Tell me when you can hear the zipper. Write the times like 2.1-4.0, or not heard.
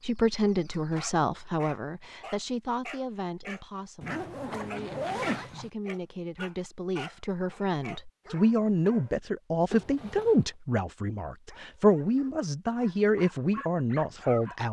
4.0-5.7, 9.7-10.5.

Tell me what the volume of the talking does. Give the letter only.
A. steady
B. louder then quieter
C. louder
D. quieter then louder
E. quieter
D.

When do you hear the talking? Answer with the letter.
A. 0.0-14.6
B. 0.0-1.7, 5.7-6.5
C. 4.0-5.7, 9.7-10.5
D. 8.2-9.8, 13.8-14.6
A.